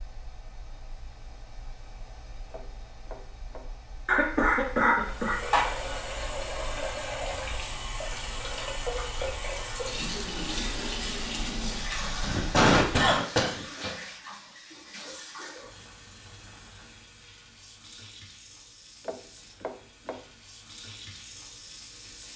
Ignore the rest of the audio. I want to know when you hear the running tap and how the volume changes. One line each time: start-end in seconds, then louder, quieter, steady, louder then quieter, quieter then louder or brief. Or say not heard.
5.0-22.3 quieter.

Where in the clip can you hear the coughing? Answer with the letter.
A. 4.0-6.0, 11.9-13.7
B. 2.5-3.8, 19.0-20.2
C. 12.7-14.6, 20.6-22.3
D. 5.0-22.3
A.